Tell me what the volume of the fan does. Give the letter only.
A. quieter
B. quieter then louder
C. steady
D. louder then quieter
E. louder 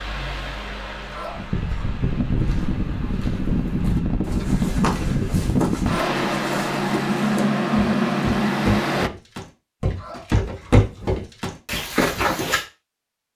E.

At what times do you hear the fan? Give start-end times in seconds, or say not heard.
0.0-9.1.